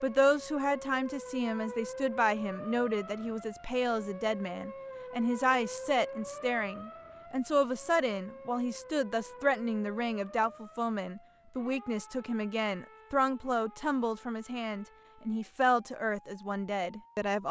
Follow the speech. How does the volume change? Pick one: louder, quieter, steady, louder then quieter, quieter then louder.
steady.